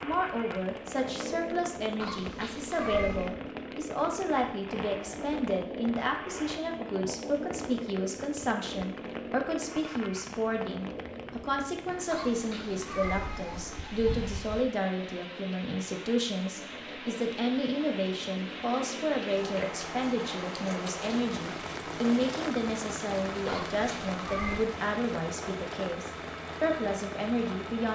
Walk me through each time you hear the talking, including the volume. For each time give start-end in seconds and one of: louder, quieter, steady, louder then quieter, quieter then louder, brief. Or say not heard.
0.0-27.9 steady.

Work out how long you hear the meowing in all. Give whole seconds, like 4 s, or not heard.
5 s.